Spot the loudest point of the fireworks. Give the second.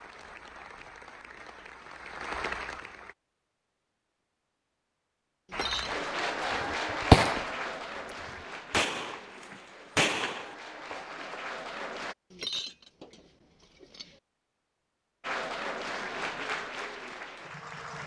7 s.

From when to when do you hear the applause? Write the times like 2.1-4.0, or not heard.
0.0-3.1, 5.5-12.2, 15.2-18.0.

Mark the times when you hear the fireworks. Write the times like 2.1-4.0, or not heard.
6.6-11.3.